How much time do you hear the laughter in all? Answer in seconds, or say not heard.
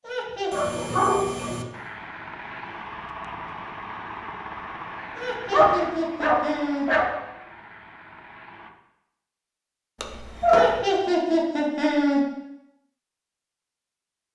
4 s.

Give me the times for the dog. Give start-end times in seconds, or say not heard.
0.5-1.6, 5.5-7.1, 10.0-10.8.